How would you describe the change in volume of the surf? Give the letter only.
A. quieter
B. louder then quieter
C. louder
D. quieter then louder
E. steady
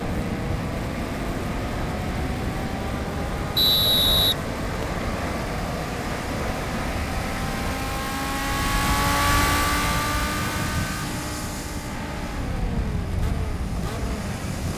E.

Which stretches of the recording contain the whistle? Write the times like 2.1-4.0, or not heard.
3.5-5.0.